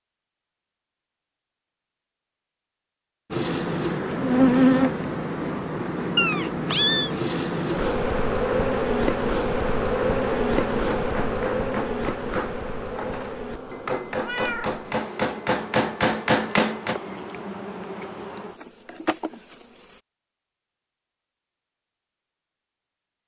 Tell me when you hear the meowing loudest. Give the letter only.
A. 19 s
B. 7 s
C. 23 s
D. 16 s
B.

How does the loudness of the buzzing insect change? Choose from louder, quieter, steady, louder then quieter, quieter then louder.
quieter.